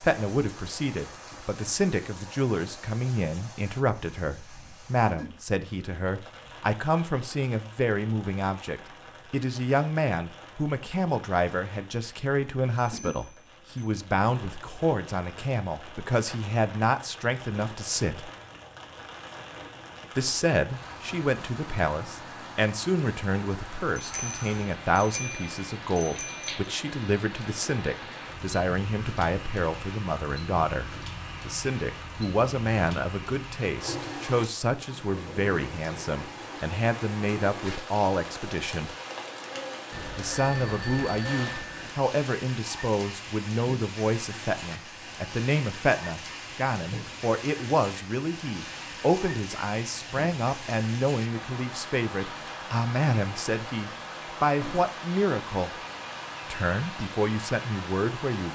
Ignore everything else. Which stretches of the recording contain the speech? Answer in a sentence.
The speech can be heard from 0.0 to 18.3 s, from 20.1 to 39.0 s, from 40.1 to 55.8 s and from 56.5 to 58.5 s.